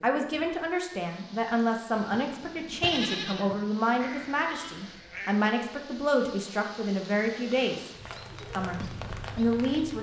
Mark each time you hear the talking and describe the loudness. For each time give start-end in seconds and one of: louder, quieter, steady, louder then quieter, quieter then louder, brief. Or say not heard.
0.0-7.9 steady
8.6-9.9 brief.